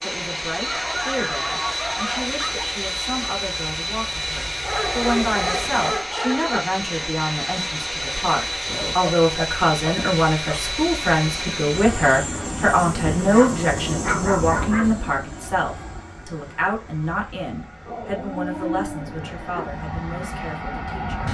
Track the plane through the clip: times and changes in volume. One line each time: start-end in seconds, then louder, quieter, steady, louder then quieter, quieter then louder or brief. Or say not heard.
0.0-21.2 quieter.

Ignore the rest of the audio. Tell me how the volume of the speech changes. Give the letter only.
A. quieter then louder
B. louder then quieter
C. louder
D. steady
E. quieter
B.